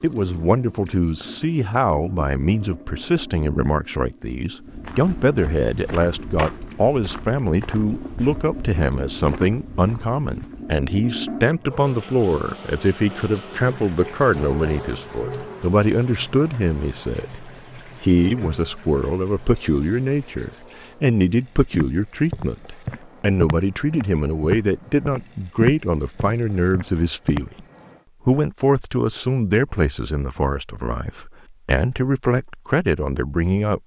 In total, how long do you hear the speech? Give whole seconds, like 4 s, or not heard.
33 s.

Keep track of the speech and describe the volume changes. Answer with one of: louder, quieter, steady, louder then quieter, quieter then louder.
steady.